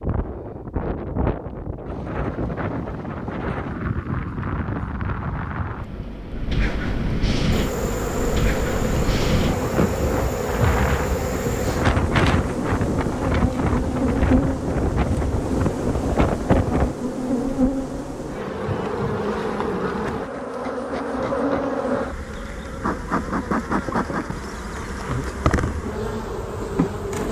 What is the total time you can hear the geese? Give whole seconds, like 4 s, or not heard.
not heard.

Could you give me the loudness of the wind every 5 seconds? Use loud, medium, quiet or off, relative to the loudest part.
medium, loud, loud, loud, off, off.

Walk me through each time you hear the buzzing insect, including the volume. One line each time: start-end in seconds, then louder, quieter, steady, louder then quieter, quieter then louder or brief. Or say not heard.
7.5-27.2 steady.